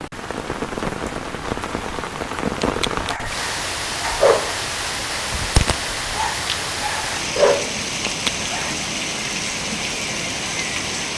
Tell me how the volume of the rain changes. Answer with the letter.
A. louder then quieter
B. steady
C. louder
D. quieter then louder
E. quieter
B.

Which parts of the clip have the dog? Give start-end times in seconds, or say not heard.
2.6-8.8.